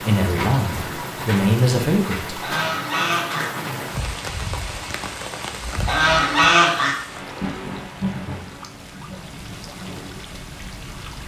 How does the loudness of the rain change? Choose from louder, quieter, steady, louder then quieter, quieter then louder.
quieter.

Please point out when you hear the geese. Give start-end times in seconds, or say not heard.
2.4-3.5, 5.8-7.0.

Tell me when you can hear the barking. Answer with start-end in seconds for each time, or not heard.
not heard.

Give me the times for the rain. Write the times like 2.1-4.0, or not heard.
0.0-11.2.